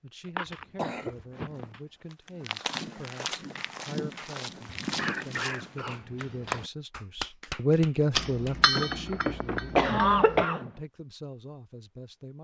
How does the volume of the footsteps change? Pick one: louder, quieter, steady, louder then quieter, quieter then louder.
louder.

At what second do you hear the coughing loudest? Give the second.
10 s.